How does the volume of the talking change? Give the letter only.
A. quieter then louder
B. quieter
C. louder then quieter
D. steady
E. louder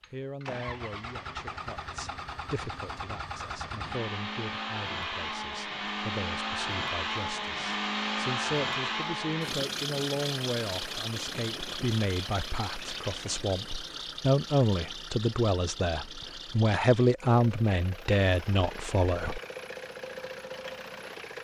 E.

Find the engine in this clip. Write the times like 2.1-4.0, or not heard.
0.0-21.3.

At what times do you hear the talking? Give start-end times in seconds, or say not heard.
0.1-19.4.